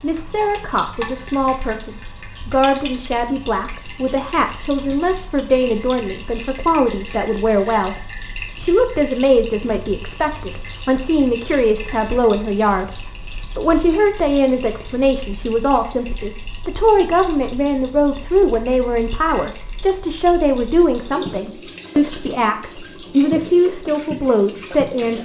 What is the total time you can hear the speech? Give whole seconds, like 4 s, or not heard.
25 s.